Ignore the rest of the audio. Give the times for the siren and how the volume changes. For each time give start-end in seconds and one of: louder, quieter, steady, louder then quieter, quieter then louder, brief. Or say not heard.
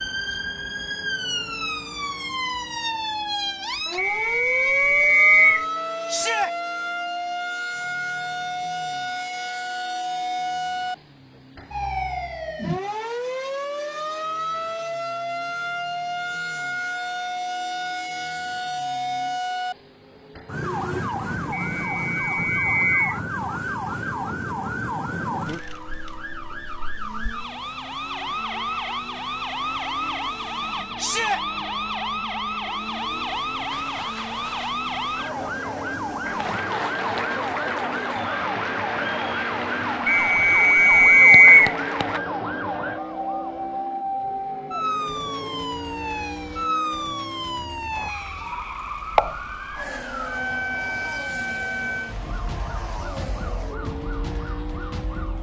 0.0-55.3 steady.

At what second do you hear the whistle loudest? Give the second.
41 s.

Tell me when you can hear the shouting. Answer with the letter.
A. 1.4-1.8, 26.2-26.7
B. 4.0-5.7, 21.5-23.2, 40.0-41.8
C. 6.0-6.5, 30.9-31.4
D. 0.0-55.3
C.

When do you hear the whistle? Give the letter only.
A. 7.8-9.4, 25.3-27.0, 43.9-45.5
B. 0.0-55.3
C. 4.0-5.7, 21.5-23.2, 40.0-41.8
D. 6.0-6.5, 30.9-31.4
C.